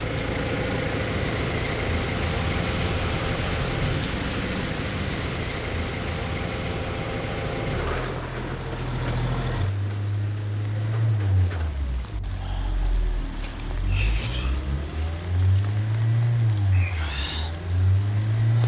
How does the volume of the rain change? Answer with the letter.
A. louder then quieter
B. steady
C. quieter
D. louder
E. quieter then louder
C.